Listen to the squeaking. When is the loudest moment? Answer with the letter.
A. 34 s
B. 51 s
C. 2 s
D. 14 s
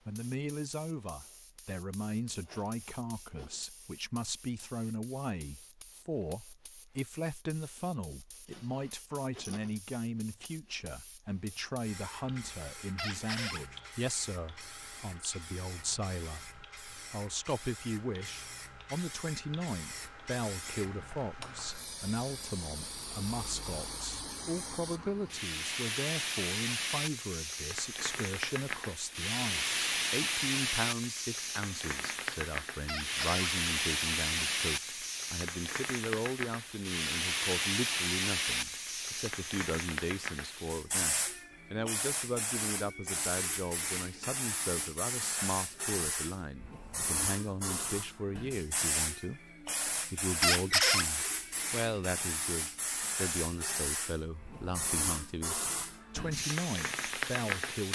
B.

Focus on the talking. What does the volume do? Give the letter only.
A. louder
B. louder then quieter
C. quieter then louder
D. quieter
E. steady
E.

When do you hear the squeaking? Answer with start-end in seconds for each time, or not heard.
12.9-13.6, 32.9-33.5, 50.4-51.0.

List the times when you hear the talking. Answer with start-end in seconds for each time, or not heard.
0.1-57.9.